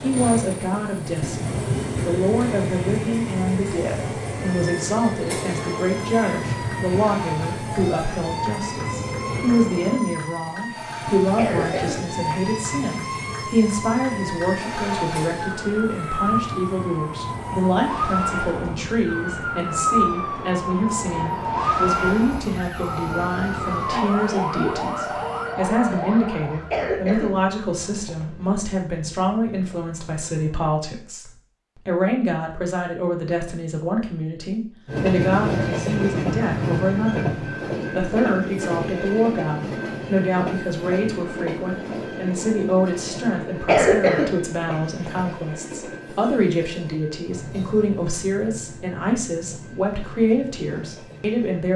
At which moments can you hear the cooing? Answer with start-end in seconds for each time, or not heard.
not heard.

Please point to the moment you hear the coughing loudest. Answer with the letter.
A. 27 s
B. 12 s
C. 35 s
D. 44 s
D.